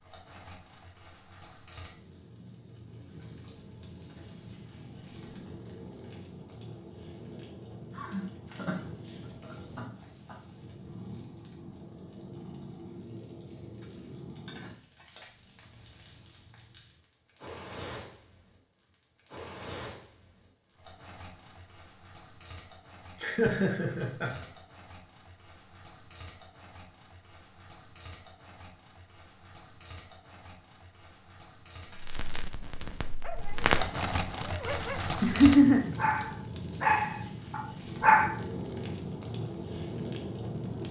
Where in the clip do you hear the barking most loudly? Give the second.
38 s.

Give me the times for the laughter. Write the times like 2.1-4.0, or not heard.
7.9-10.3, 23.1-24.4, 35.2-35.9.